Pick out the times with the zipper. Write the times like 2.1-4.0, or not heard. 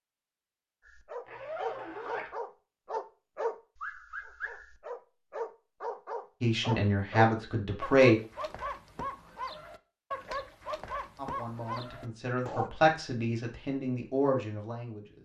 1.2-2.4.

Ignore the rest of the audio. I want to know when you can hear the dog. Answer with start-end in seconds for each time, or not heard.
0.8-12.7.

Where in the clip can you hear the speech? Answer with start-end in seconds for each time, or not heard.
6.4-8.2, 11.2-15.2.